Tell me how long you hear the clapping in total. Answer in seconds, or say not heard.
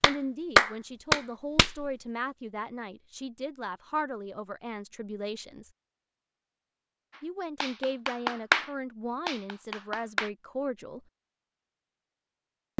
5 s.